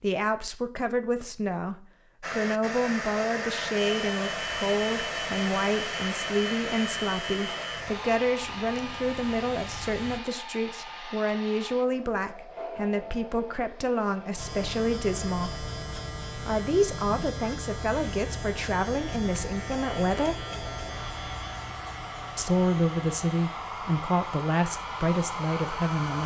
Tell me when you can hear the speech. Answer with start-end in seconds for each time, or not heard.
0.0-15.7, 16.4-20.4, 22.4-26.2.